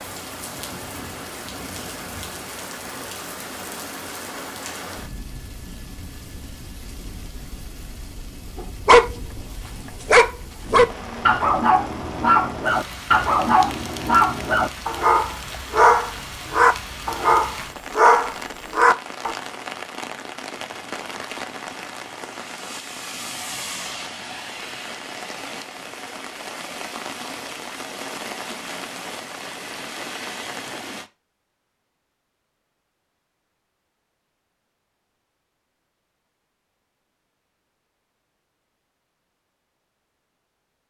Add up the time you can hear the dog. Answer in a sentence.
You can hear the dog for 11 seconds altogether.